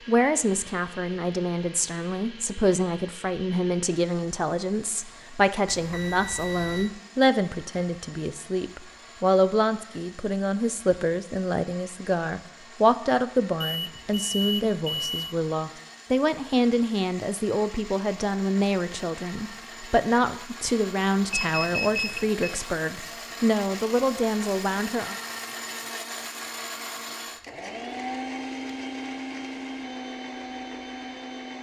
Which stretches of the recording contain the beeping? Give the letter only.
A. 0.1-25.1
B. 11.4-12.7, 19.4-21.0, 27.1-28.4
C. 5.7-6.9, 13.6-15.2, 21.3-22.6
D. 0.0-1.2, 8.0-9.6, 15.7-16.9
C.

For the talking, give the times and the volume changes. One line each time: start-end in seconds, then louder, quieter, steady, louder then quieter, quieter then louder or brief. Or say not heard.
0.1-25.1 steady.